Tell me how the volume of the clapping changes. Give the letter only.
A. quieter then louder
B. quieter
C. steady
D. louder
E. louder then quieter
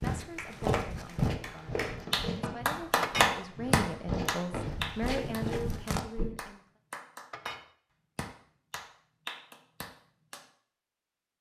E.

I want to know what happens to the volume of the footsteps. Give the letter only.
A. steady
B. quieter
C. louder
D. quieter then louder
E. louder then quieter
D.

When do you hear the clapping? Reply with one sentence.
You can hear the clapping from 0.1 to 10.4 s.